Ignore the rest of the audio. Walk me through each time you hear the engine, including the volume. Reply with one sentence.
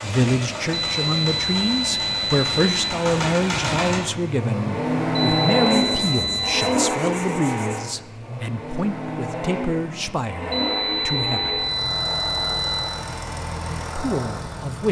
The engine can be heard from 0.0 to 14.8 s, getting louder then quieter.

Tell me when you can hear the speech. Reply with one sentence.
The speech can be heard from 0.0 to 11.7 s and from 13.9 to 14.8 s.